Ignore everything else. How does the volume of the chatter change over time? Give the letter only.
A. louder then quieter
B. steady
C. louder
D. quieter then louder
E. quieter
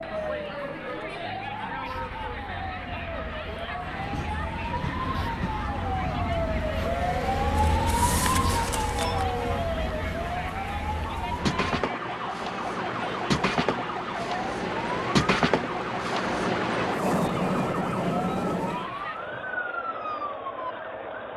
B.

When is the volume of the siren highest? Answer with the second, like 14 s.
8 s.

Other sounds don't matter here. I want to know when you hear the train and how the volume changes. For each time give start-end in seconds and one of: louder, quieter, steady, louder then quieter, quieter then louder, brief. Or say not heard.
3.8-18.9 louder.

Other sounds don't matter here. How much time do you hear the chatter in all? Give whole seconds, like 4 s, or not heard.
21 s.